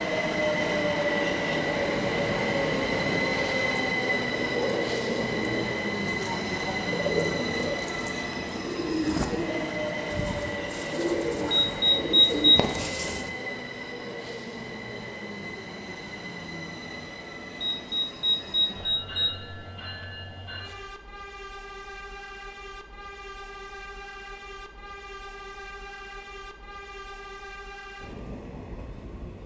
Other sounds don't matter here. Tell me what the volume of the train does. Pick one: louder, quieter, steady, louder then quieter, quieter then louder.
quieter.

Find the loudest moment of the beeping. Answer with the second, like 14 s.
12 s.